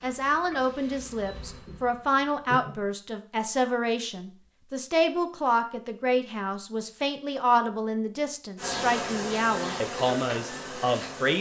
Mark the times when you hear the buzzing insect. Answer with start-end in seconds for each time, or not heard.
0.0-3.0, 8.6-11.3.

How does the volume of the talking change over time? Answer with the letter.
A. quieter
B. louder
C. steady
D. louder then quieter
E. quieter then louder
C.